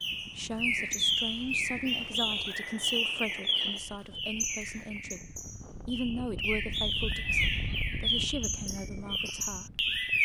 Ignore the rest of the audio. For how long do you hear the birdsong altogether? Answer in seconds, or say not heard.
10 s.